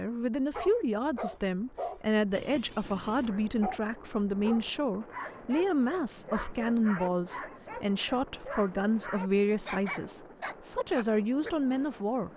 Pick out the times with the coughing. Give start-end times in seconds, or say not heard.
not heard.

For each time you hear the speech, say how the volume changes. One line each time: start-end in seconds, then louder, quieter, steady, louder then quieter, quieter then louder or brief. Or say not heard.
0.0-12.3 steady.